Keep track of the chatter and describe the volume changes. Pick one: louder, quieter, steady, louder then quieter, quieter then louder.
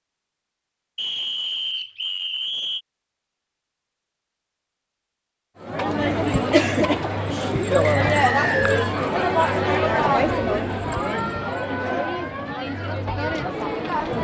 quieter.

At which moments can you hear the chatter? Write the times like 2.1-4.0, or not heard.
5.6-14.2.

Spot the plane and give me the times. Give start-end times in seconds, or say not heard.
not heard.